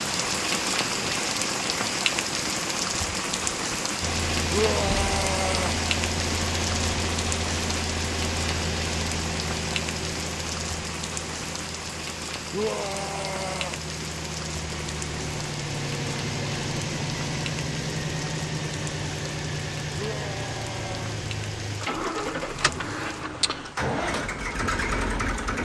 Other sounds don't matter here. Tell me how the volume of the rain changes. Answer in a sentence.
The loudness of the rain goes down.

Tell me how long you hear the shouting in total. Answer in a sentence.
You can hear the shouting for 4 seconds altogether.